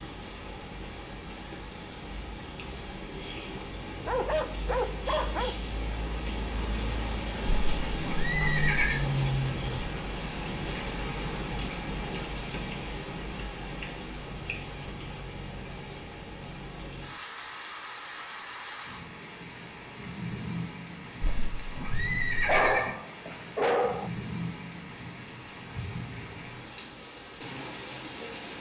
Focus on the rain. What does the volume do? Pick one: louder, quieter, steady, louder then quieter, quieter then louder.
louder then quieter.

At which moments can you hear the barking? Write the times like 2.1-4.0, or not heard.
4.0-5.5, 22.4-24.1.